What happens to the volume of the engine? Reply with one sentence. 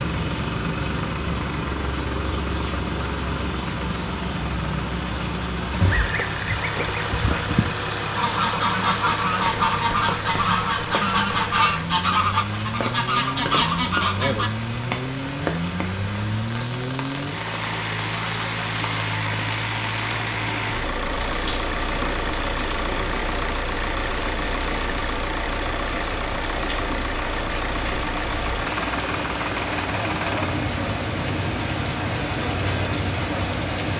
The volume of the engine stays about the same.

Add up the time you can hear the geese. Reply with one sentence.
You can hear the geese for 9 seconds altogether.